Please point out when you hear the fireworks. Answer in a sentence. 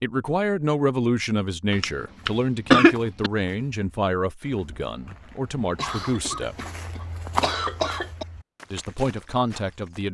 You can't hear the fireworks here.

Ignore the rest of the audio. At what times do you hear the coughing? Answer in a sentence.
You can hear the coughing from 1.7 to 3.3 s and from 5.5 to 8.2 s.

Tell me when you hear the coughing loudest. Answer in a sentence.
The loudest moment of the coughing is at 3 seconds.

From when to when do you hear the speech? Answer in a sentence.
The speech can be heard from 0.0 to 6.5 s and from 8.7 to 10.0 s.